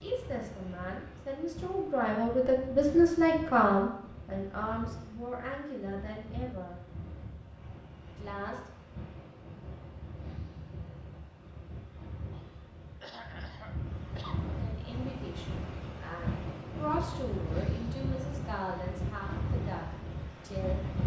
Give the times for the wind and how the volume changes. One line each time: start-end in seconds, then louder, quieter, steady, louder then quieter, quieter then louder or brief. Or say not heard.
0.0-21.0 louder.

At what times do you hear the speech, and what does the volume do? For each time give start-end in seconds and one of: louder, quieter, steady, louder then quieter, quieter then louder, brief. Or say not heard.
0.0-6.8 louder then quieter
8.2-8.6 brief
14.4-20.8 louder then quieter.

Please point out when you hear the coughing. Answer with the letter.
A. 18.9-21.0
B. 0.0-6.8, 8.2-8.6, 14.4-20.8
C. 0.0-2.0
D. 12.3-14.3
D.